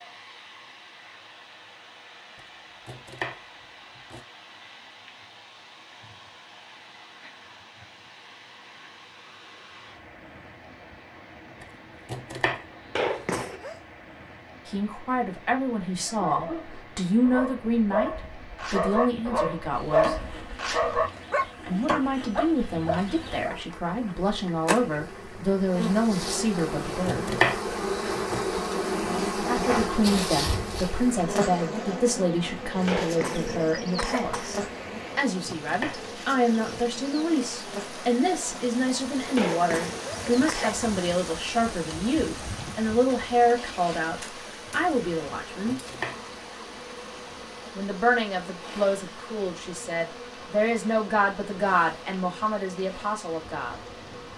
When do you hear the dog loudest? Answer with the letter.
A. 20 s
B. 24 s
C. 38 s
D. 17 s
A.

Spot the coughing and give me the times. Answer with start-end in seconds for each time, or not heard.
12.9-13.8, 32.9-34.5, 39.4-40.9.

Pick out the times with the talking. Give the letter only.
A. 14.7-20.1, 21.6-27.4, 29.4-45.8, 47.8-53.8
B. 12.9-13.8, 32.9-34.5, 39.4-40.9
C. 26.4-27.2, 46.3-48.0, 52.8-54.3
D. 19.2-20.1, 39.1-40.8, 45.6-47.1
A.